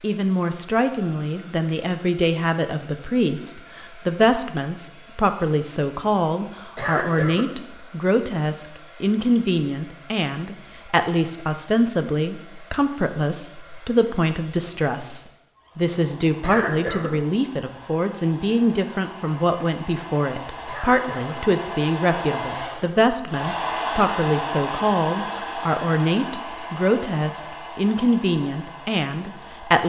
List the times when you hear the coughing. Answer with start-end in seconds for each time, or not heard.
6.8-7.5, 16.4-17.1, 20.6-21.4.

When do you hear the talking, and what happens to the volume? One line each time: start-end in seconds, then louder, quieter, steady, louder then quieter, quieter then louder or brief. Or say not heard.
0.0-29.8 steady.